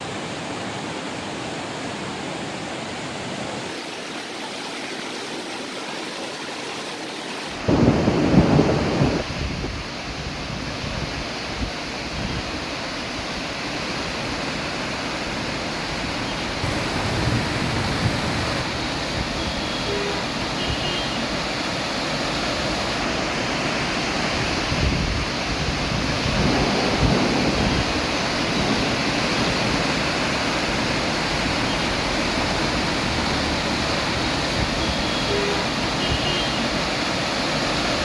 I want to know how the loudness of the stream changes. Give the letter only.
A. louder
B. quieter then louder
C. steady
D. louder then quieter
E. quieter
A.